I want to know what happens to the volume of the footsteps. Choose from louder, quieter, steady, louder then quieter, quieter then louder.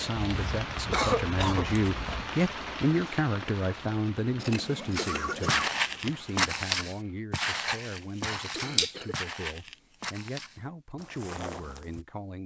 quieter.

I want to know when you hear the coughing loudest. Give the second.
1 s.